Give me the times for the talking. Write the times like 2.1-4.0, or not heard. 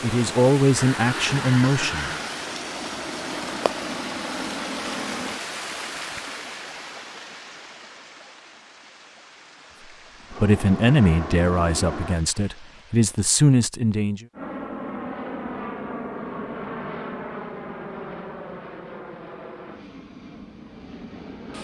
0.0-2.1, 10.3-14.2.